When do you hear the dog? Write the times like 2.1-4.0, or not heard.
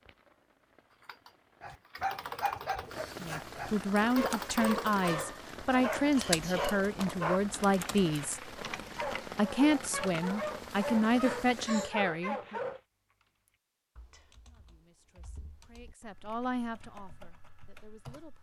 1.6-12.8.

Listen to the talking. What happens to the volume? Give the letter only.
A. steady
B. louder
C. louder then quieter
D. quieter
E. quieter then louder
D.